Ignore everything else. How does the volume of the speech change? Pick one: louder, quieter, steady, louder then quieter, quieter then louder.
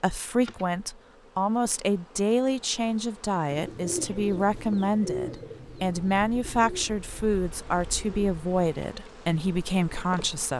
steady.